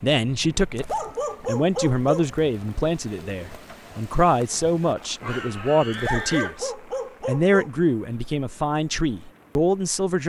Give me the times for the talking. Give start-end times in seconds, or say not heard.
0.0-10.2.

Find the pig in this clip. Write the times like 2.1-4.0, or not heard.
5.2-6.7.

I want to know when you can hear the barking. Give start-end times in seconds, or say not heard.
0.8-2.2, 5.9-7.7.